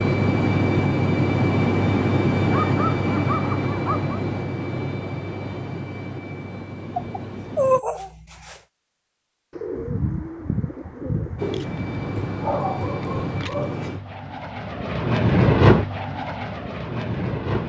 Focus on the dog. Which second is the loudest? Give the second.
8 s.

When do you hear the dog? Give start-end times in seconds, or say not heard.
2.5-4.2, 7.0-8.6, 12.2-13.8.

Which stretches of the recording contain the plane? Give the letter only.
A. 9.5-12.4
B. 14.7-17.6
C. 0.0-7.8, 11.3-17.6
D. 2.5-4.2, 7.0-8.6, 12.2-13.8
C.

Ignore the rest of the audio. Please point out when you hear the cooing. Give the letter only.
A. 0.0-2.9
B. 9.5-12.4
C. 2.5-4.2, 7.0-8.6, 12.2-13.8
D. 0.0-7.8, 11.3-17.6
B.